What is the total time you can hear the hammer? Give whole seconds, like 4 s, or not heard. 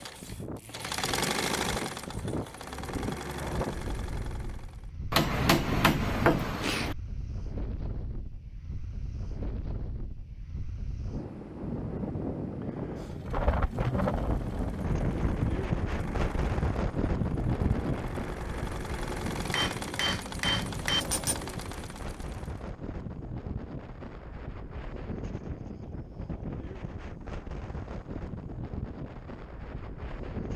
4 s.